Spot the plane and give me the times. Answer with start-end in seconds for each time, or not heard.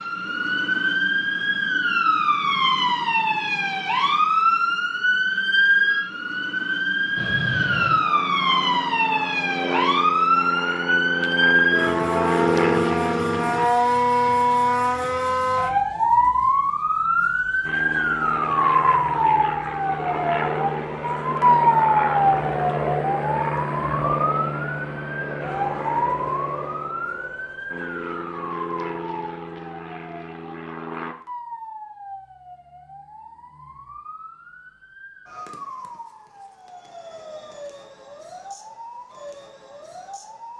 7.2-13.7, 17.6-31.1.